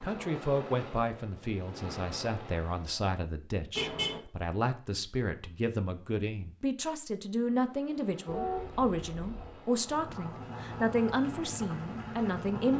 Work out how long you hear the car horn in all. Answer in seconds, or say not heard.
2 s.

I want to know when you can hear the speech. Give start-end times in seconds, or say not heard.
0.0-12.7.